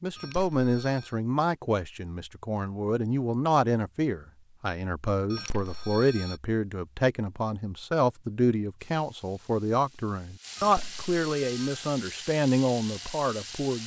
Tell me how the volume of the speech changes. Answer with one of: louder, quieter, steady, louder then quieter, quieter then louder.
steady.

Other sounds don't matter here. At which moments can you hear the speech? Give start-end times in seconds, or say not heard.
0.0-13.8.